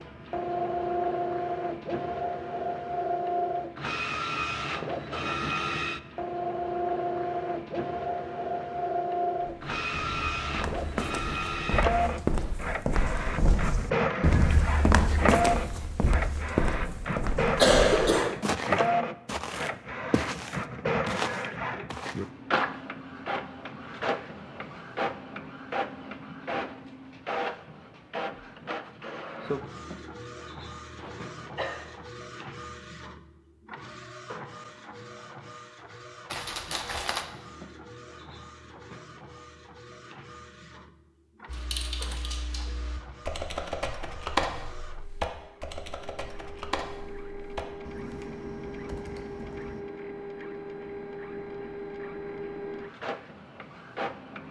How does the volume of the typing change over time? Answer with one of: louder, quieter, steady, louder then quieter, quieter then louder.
louder then quieter.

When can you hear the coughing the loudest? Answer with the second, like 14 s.
18 s.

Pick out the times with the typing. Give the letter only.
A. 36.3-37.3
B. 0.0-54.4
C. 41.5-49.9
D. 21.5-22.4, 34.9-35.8
C.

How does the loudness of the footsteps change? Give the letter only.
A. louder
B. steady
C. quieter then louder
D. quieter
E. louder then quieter
E.